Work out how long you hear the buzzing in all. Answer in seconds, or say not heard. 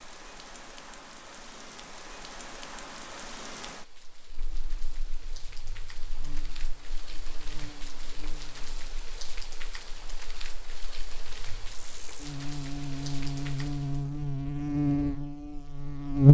12 s.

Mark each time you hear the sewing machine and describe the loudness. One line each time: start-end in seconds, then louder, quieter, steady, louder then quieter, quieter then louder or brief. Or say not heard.
not heard.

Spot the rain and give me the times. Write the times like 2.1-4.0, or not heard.
0.0-14.1.